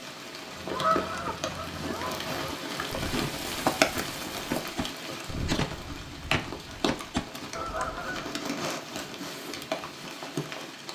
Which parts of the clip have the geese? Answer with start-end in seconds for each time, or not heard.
0.5-8.4.